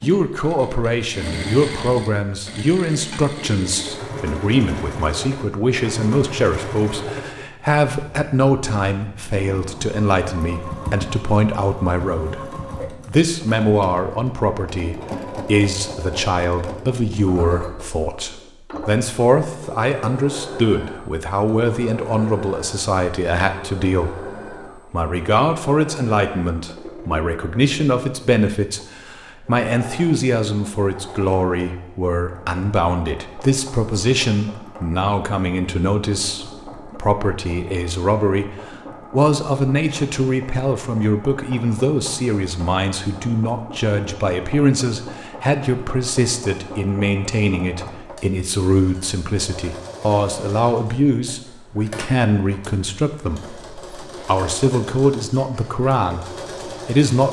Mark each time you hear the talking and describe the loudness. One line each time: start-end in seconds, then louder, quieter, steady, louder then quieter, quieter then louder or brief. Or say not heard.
0.0-57.2 steady.